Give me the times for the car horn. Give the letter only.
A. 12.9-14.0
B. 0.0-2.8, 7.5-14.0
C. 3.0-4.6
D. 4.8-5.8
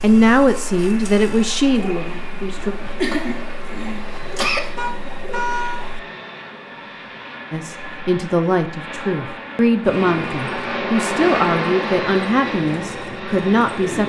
D.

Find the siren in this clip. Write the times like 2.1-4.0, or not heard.
not heard.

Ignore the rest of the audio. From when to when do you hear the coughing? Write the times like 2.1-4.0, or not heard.
3.0-4.6.